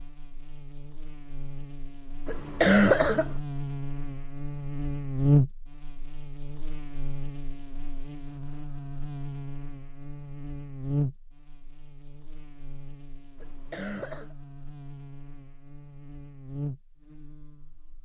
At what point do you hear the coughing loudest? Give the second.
3 s.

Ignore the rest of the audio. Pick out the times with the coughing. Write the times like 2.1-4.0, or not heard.
2.2-3.4, 13.4-14.3.